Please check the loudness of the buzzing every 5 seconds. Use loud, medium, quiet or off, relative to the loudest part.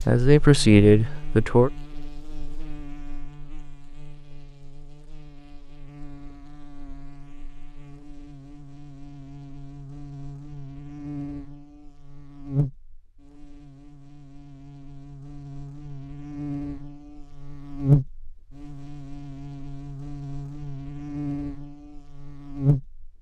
quiet, quiet, medium, loud, loud.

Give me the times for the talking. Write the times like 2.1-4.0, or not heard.
0.1-1.7.